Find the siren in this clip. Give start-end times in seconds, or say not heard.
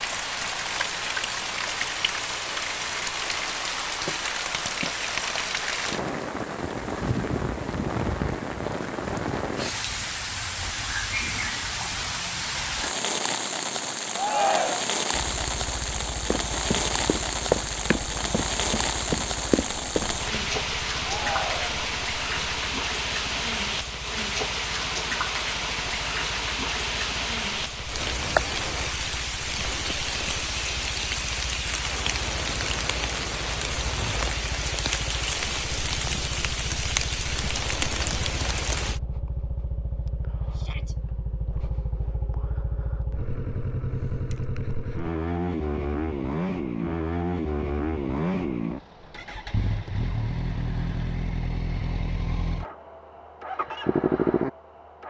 not heard.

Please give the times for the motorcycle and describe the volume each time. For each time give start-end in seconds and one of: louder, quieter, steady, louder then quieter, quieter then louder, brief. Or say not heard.
15.1-55.0 louder.